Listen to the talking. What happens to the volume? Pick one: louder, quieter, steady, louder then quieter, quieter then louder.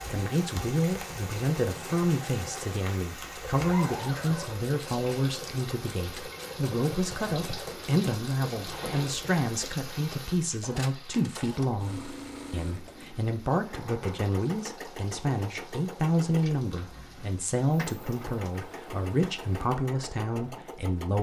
steady.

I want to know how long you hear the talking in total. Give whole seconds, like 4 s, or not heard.
21 s.